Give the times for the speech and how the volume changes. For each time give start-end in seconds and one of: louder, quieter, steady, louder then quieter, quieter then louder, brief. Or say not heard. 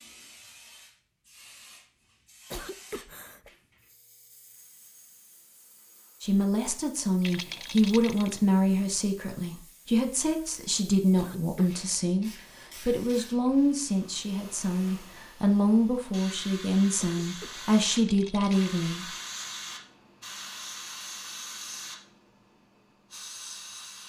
6.2-19.1 steady.